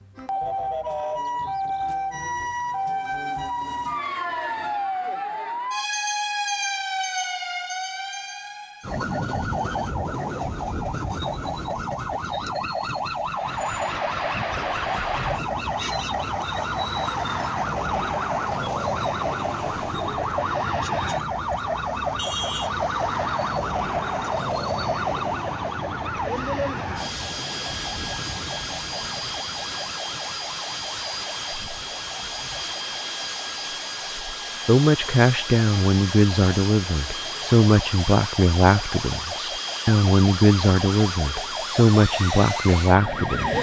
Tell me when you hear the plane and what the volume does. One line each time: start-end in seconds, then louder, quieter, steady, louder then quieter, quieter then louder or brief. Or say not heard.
13.2-43.5 steady.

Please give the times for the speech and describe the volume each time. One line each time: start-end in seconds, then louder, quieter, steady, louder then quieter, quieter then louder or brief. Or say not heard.
34.6-43.5 steady.